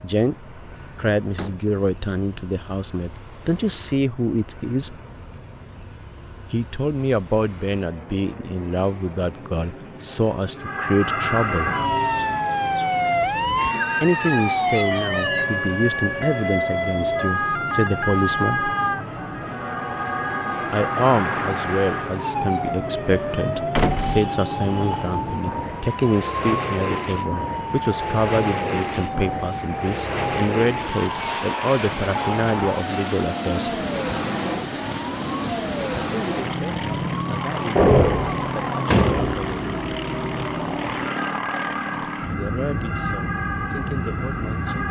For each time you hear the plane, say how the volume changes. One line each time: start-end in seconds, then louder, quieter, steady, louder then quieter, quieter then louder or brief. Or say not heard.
0.0-44.8 louder.